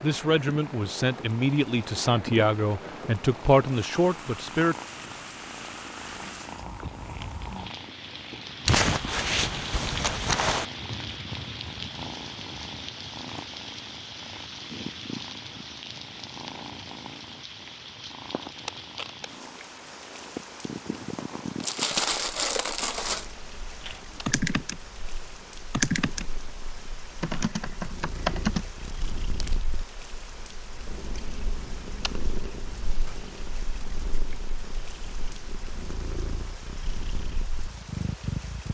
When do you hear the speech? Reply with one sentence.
You can hear the speech from 0.0 to 4.8 s.